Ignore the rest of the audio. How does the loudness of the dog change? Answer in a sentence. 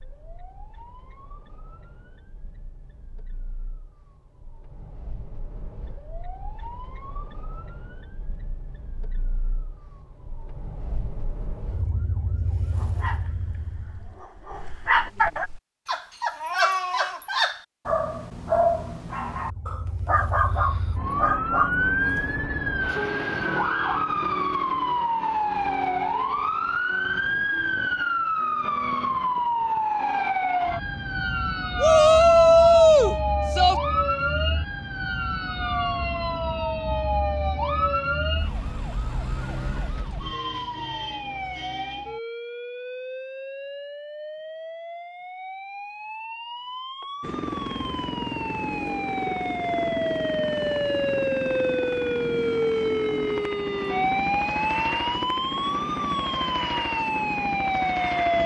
The loudness of the dog goes up.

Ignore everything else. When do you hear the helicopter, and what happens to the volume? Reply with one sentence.
You can hear the helicopter from 47.2 to 58.4 s, at a steady volume.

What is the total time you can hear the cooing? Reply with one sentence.
You can't hear the cooing here.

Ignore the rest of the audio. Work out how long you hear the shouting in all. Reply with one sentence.
The shouting can be heard for 2 seconds in total.